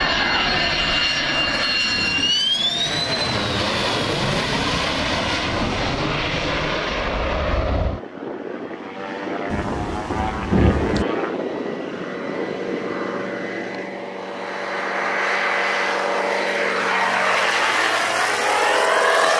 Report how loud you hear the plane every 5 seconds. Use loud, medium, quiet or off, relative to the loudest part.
loud, medium, medium, loud.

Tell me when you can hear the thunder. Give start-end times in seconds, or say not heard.
9.5-11.1.